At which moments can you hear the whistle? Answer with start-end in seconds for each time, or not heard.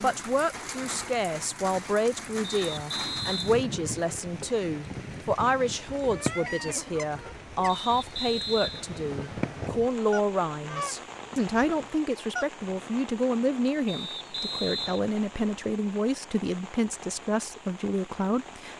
2.5-3.5, 7.7-9.7, 13.8-15.1.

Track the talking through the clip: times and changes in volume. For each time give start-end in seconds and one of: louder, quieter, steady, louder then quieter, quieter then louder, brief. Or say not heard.
0.0-18.7 steady.